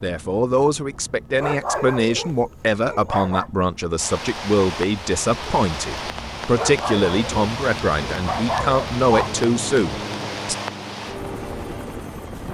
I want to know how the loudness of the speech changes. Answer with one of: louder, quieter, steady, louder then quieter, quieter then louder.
steady.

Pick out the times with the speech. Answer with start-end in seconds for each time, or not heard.
0.0-10.6.